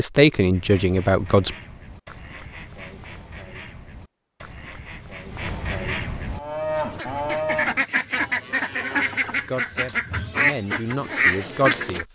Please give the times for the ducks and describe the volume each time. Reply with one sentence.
You can hear the ducks from 0.5 to 12.1 s, getting louder.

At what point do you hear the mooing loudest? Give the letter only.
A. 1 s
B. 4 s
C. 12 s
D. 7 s
D.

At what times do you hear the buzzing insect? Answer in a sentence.
You can't hear the buzzing insect here.